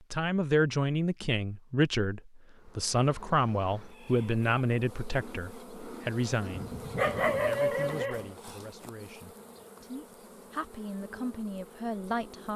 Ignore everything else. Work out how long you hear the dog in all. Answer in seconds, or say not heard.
2 s.